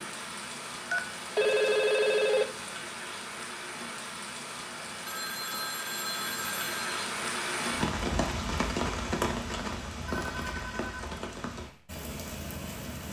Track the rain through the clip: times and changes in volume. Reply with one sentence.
You can hear the rain from 0.0 to 13.0 s, getting louder then quieter.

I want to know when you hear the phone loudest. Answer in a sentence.
The volume of the phone peaks at 2 seconds.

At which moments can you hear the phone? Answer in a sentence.
The phone can be heard from 0.9 to 2.5 s, from 5.0 to 7.0 s and from 10.1 to 11.1 s.